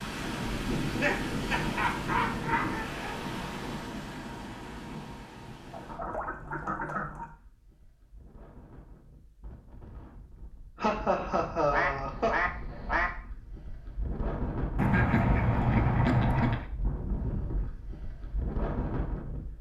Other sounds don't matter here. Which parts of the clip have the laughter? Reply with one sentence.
You can hear the laughter from 0.8 to 2.7 s and from 10.8 to 12.3 s.